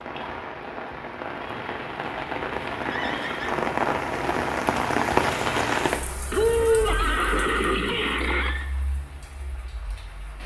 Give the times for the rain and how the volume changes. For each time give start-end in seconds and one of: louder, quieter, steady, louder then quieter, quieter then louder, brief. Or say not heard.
0.0-10.4 louder then quieter.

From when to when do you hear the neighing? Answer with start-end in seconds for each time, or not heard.
2.8-3.7, 6.3-8.7.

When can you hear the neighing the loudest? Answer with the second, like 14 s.
7 s.